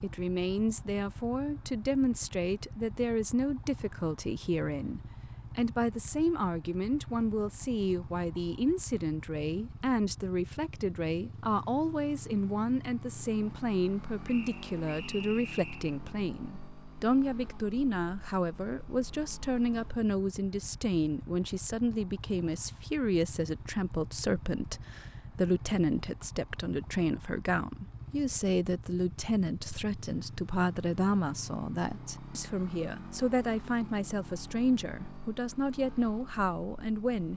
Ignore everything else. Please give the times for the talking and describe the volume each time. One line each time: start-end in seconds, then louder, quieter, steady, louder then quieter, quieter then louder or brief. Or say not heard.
0.0-37.3 steady.